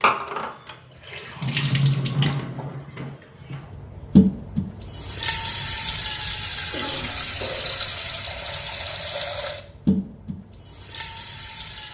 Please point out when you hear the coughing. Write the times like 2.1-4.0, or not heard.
2.5-3.6, 6.7-8.0.